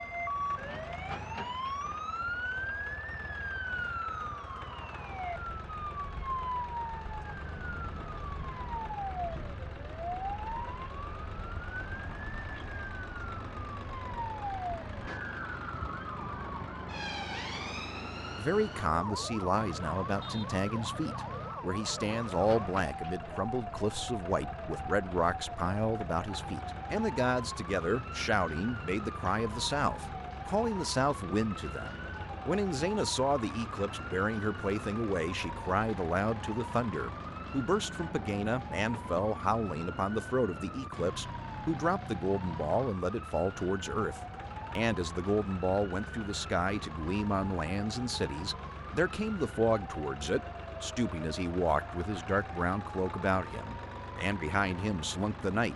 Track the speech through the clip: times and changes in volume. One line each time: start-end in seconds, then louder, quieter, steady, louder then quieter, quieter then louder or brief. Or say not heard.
18.4-55.7 steady.